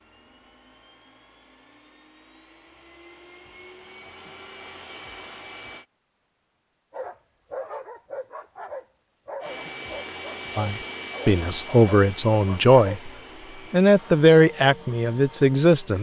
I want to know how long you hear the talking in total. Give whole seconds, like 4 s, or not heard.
5 s.